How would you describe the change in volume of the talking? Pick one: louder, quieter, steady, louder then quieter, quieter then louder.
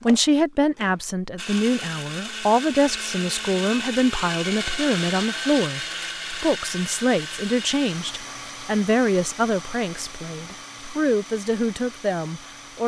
steady.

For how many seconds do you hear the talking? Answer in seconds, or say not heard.
13 s.